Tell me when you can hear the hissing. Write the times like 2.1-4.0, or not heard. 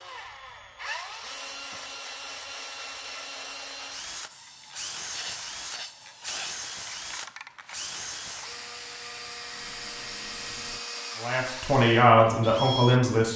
4.2-10.8.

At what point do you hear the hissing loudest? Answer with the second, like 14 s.
6 s.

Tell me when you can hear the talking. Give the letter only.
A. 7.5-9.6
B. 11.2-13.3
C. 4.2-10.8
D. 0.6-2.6
B.